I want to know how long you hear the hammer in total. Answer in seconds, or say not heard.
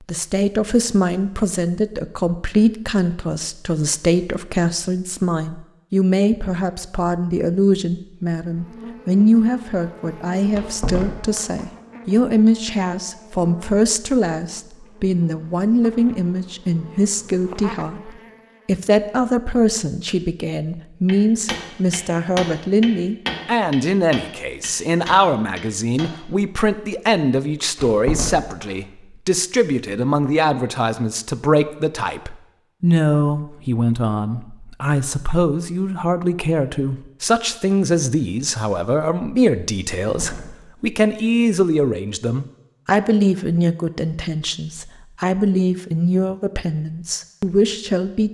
5 s.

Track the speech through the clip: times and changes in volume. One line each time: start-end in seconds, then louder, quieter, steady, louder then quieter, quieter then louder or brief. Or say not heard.
0.1-48.3 steady.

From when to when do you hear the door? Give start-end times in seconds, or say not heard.
10.5-11.4, 27.8-28.6, 40.0-40.5.